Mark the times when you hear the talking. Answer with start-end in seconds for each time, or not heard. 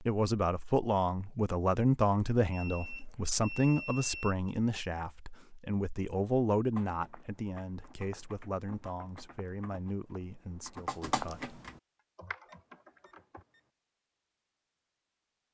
0.0-11.6.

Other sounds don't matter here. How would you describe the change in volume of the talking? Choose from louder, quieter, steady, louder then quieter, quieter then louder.
quieter.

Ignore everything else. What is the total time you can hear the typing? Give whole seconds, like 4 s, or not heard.
7 s.